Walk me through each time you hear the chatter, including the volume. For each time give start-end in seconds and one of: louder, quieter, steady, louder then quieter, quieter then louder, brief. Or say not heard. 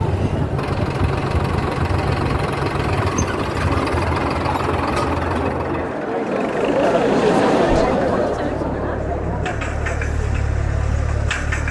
0.0-11.6 louder then quieter.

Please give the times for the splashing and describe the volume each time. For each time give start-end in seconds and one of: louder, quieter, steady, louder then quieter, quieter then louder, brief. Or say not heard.
not heard.